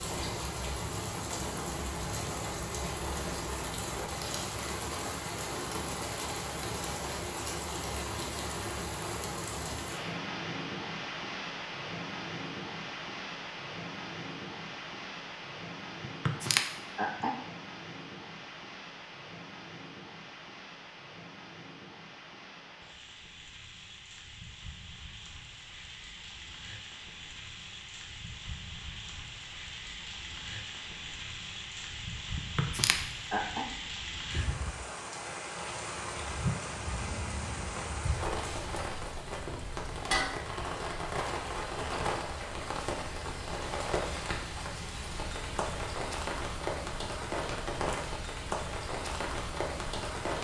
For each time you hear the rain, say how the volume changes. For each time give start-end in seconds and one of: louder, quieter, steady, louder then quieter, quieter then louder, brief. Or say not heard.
0.0-50.3 quieter then louder.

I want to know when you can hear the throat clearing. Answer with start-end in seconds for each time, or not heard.
16.1-17.4, 32.4-33.6.